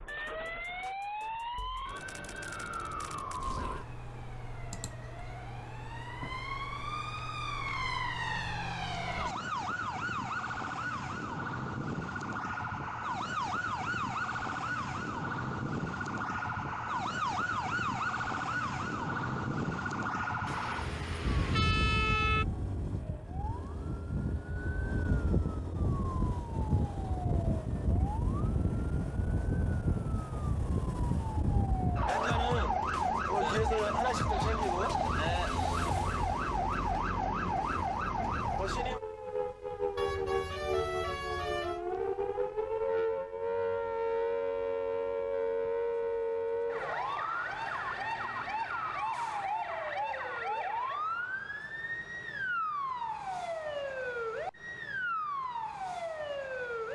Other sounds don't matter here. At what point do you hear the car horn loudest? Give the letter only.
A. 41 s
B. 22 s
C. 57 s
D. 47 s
B.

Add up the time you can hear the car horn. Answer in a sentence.
You can hear the car horn for 4 seconds altogether.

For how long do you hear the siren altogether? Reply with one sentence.
You can hear the siren for 57 seconds altogether.